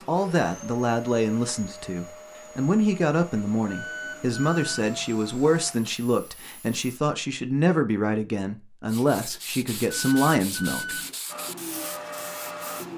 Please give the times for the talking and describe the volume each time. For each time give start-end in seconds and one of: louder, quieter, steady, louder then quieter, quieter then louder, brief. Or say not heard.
0.1-11.0 steady.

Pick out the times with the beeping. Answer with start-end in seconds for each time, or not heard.
3.6-4.9, 9.8-11.2.